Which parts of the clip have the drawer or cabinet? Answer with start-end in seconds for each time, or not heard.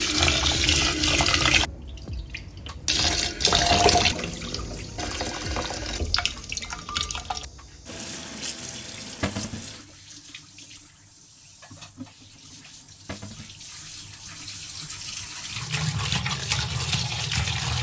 3.7-4.2, 9.2-9.7, 13.1-13.6.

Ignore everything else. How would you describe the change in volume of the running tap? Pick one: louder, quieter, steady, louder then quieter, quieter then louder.
quieter then louder.